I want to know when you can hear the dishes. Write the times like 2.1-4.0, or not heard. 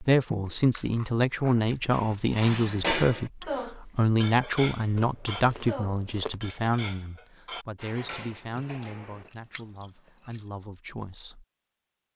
1.9-9.3.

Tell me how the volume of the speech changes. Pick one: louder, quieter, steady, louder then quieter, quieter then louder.
quieter.